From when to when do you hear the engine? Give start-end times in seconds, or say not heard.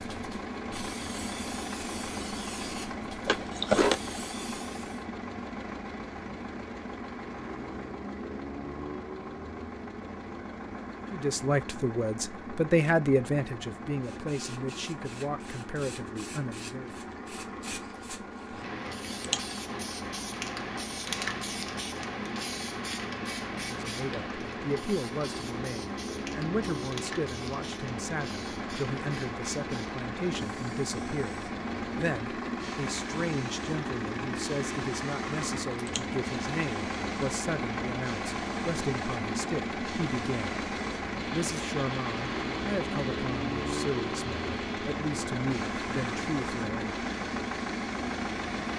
0.0-48.7.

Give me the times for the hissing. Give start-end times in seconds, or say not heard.
0.0-5.0, 13.8-48.7.